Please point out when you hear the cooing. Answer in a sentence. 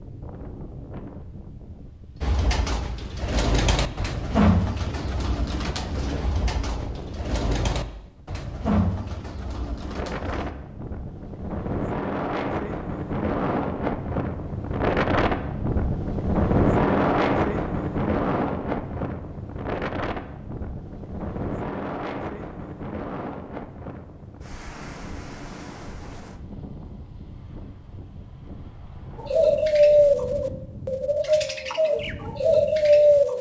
You can hear the cooing from 2.2 to 10.6 s and from 29.1 to 33.3 s.